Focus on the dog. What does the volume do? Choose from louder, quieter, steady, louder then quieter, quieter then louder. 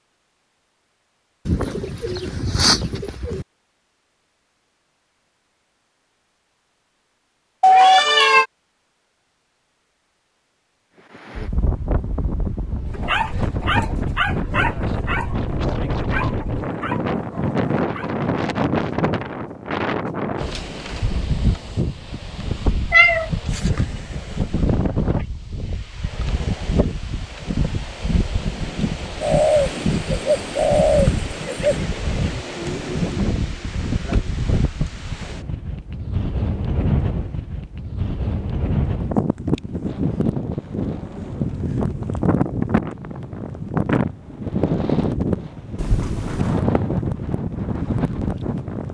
quieter.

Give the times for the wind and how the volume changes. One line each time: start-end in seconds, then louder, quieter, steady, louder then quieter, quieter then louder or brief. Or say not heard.
11.1-48.8 steady.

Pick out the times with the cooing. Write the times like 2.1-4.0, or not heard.
1.4-3.5, 29.2-31.8.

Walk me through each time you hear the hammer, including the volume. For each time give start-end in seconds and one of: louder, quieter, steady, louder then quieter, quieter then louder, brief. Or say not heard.
not heard.